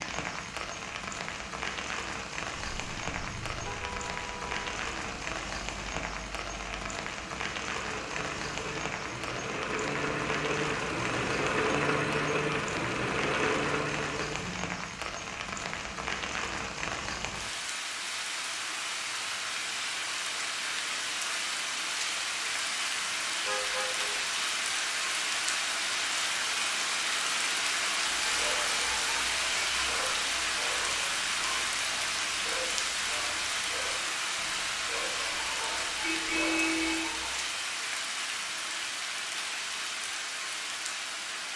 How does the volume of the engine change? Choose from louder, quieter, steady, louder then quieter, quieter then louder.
louder.